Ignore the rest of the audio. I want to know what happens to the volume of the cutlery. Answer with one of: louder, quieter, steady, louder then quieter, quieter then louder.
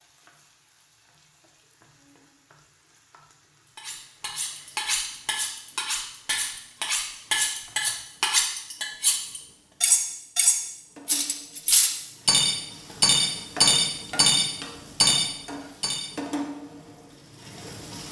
louder.